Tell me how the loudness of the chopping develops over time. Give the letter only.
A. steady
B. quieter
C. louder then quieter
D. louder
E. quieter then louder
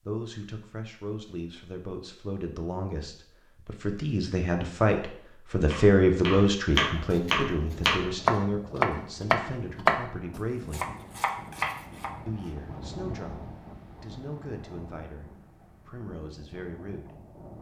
C.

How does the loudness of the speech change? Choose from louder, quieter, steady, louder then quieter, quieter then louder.
louder then quieter.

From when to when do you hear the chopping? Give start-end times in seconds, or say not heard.
5.6-12.5.